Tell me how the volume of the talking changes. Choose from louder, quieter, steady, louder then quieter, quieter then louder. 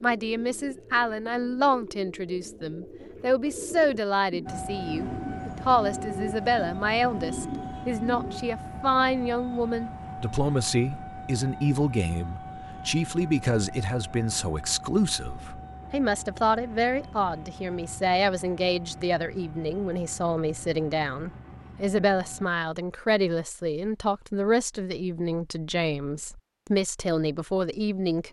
steady.